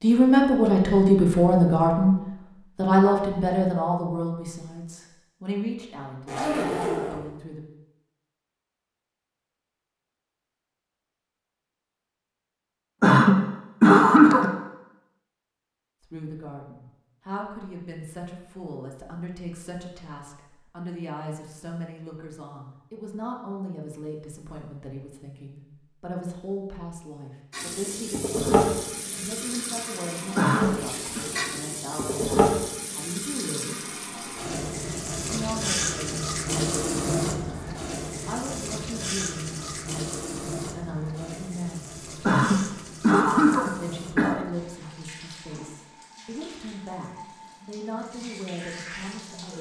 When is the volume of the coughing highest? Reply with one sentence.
The loudest moment of the coughing is at 14 seconds.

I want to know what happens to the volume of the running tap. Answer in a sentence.
The loudness of the running tap goes down.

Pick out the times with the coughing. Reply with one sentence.
The coughing can be heard from 13.0 to 14.5 s, from 30.4 to 31.2 s and from 42.2 to 44.5 s.